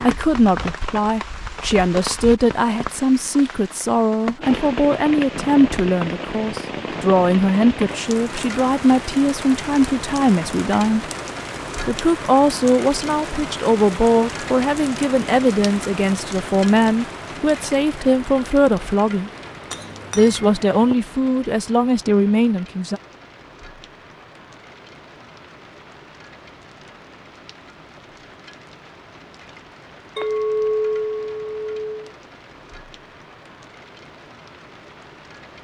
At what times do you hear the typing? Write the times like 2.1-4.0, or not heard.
not heard.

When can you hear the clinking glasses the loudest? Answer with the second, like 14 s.
31 s.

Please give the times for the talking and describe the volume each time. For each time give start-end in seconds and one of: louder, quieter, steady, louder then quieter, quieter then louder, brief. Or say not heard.
0.0-11.1 steady
11.8-19.3 steady
20.1-23.0 brief.